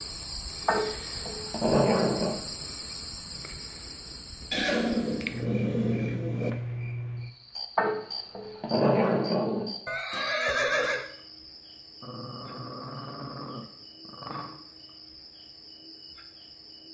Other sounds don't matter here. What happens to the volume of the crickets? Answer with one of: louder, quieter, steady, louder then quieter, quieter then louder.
quieter.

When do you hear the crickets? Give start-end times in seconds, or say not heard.
0.0-16.8.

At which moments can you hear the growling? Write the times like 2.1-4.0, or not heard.
0.7-2.4, 7.8-9.7, 12.0-14.6.